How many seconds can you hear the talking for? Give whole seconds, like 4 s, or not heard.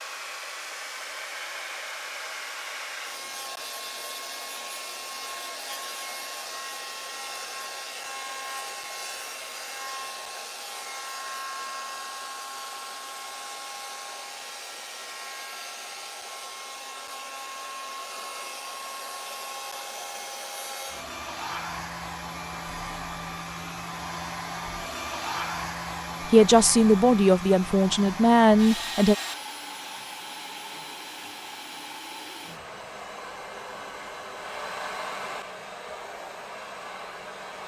3 s.